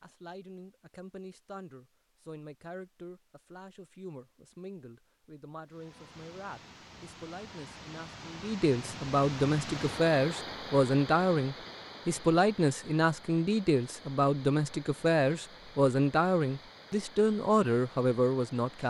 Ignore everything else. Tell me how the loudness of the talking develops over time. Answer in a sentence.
The volume of the talking goes up.